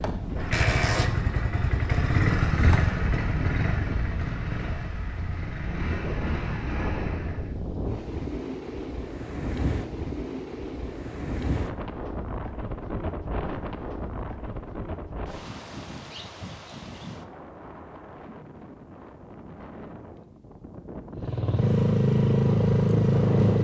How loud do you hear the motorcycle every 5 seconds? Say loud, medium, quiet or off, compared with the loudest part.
medium, quiet, off, off, loud.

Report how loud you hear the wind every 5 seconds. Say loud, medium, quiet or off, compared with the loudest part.
loud, loud, loud, medium, loud.